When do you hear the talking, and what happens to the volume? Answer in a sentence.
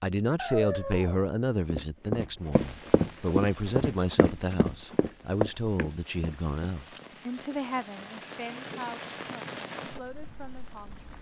The talking can be heard from 0.0 to 11.1 s, getting quieter.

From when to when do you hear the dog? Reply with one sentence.
The dog can be heard from 0.3 to 1.3 s.